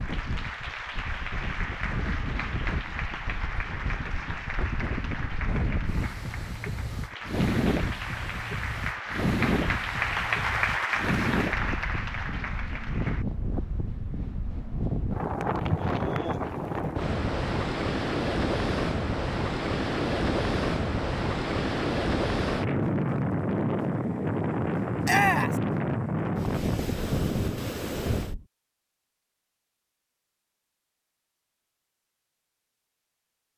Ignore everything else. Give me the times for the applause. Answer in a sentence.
You can hear the applause from 0.0 to 13.2 s.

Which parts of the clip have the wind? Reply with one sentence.
You can hear the wind from 0.0 to 28.4 s.